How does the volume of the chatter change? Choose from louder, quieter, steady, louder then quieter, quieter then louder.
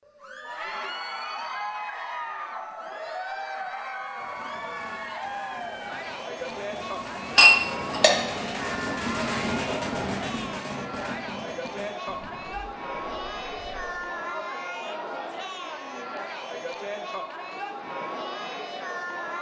steady.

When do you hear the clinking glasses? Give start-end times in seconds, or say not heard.
7.3-8.2.